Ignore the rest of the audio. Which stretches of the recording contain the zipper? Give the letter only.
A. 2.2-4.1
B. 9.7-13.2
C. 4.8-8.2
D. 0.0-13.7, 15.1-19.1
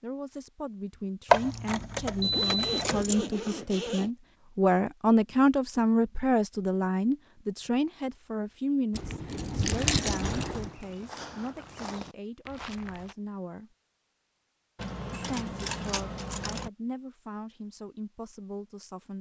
A.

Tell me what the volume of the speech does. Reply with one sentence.
The loudness of the speech goes up, then down.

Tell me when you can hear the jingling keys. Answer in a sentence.
You can hear the jingling keys from 1.3 to 3.2 s, from 8.9 to 10.8 s and from 14.8 to 16.7 s.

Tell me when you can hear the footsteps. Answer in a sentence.
The footsteps can be heard from 9.7 to 13.2 s.